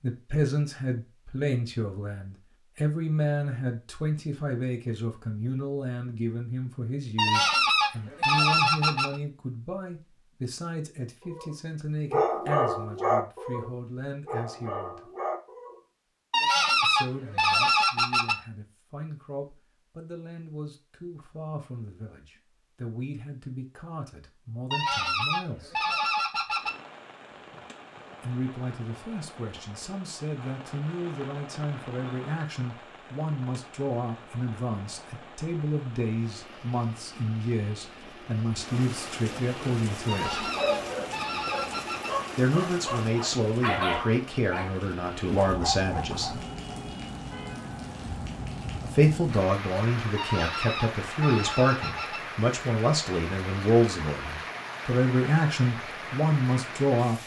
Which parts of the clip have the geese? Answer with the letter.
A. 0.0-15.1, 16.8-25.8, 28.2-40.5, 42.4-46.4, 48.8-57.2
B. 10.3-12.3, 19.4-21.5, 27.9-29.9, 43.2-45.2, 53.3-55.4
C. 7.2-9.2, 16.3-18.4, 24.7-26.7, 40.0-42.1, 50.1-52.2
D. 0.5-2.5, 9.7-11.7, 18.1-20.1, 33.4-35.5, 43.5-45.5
C.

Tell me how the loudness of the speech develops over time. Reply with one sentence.
The loudness of the speech goes down, then up.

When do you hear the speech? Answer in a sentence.
You can hear the speech from 0.0 to 15.1 s, from 16.8 to 25.8 s, from 28.2 to 40.5 s, from 42.4 to 46.4 s and from 48.8 to 57.2 s.